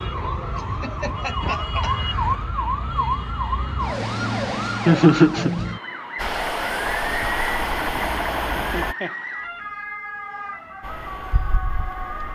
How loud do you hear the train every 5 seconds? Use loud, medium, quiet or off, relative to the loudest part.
off, loud, quiet.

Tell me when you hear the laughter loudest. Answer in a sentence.
The loudest moment of the laughter is at 5 seconds.